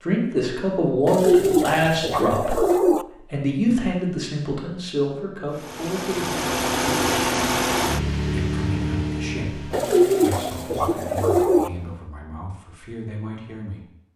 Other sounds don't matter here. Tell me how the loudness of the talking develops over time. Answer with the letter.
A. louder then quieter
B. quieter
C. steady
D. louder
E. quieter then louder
B.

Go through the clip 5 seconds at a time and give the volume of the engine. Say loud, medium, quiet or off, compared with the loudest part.
off, loud, quiet.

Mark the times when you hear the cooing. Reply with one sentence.
The cooing can be heard from 1.1 to 3.0 s and from 9.7 to 11.7 s.